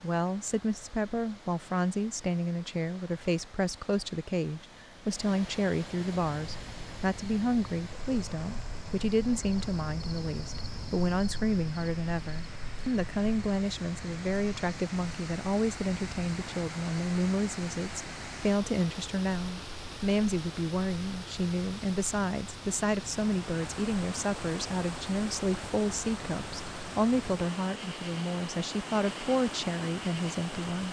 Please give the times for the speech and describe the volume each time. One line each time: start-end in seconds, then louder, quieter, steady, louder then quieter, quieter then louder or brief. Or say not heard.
0.0-30.8 steady.